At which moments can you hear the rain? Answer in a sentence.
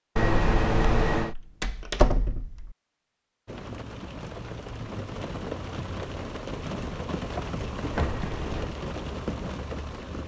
The rain can be heard from 3.5 to 10.2 s.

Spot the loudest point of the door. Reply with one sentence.
The loudest moment of the door is at 2 seconds.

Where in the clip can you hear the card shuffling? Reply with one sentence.
You can hear the card shuffling from 0.1 to 1.4 s and from 7.9 to 8.8 s.